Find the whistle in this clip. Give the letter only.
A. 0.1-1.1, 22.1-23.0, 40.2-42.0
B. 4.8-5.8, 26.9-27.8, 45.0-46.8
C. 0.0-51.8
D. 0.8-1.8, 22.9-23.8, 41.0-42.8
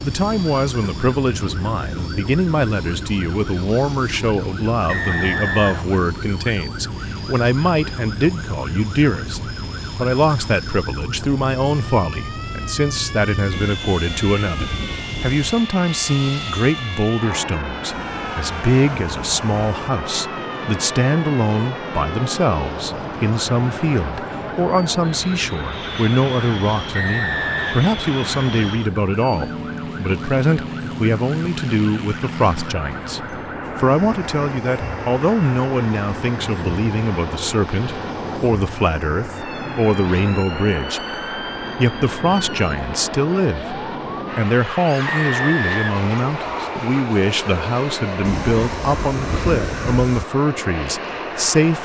B.